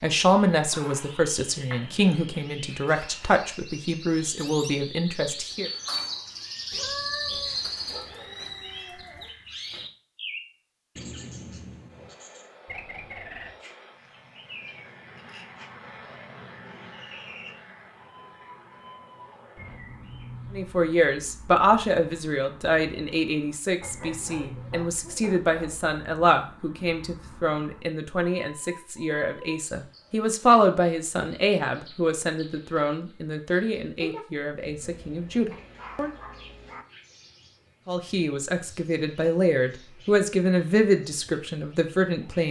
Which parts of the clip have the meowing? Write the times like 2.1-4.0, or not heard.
6.7-7.6.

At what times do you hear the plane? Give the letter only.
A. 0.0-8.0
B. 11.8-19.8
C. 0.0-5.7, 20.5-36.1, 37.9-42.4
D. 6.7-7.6
B.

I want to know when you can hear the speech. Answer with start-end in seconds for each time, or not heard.
0.0-5.7, 20.5-36.1, 37.9-42.4.